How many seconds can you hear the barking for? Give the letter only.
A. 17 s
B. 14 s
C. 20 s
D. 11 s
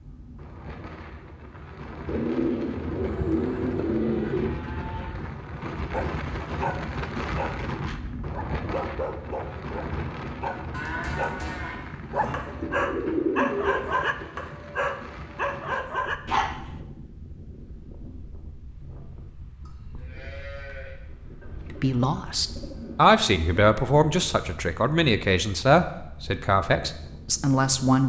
D.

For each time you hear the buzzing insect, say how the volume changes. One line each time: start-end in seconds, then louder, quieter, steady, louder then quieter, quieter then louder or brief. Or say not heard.
not heard.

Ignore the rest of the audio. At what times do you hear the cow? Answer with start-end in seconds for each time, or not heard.
3.0-5.1, 10.7-12.3, 19.6-20.9.